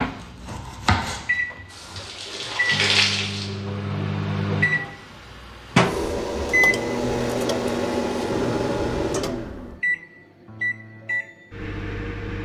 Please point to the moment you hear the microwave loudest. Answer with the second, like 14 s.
6 s.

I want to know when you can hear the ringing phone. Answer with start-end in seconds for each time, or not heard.
not heard.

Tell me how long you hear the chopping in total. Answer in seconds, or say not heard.
2 s.